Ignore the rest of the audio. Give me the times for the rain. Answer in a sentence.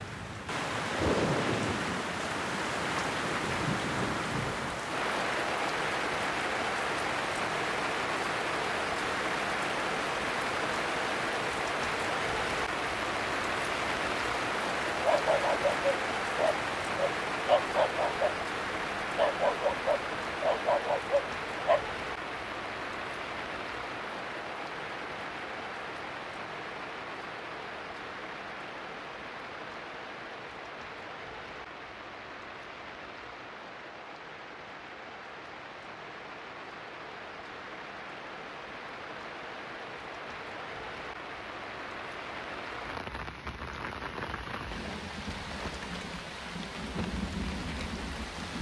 The rain can be heard from 0.0 to 48.5 s.